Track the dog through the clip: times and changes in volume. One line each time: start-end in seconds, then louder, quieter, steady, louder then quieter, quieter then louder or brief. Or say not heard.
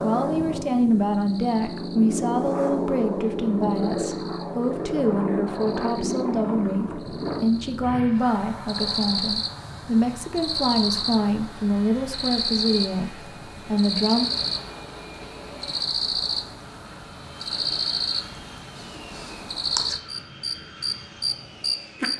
not heard.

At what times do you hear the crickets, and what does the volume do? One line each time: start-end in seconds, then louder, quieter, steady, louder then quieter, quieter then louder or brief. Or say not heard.
0.0-22.1 louder.